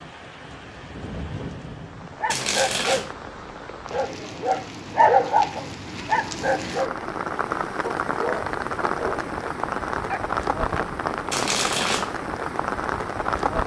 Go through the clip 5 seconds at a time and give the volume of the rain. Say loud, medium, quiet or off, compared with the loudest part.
medium, loud, loud.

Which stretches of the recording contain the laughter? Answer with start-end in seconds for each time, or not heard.
not heard.